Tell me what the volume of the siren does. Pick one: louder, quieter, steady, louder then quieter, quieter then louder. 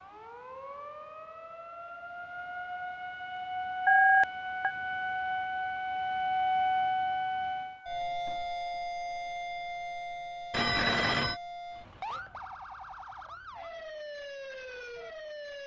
louder then quieter.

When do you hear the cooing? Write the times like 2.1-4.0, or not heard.
not heard.